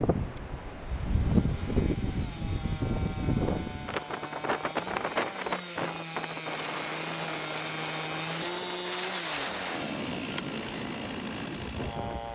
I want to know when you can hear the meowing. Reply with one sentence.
The meowing can't be heard in this clip.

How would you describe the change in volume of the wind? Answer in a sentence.
The volume of the wind goes down.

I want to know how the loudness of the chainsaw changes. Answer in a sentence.
The volume of the chainsaw goes up.